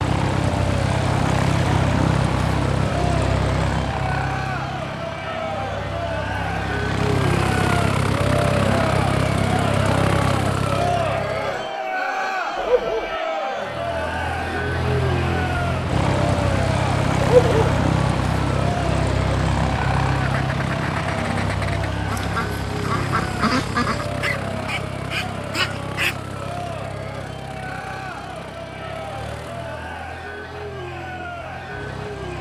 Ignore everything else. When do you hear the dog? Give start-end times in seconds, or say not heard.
12.6-13.2, 17.2-17.8.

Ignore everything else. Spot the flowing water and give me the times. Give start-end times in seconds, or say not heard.
not heard.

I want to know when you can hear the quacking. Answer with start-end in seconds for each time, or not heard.
20.2-26.1.